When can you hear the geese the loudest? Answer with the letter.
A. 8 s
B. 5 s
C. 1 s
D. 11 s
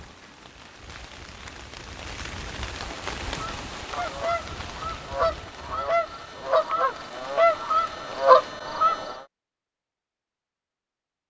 A.